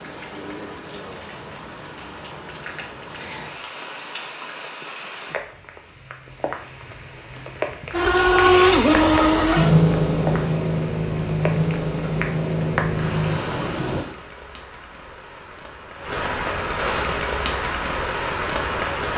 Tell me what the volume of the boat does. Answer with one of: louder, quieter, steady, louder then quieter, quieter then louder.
quieter.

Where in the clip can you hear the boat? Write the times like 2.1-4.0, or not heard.
7.9-14.1.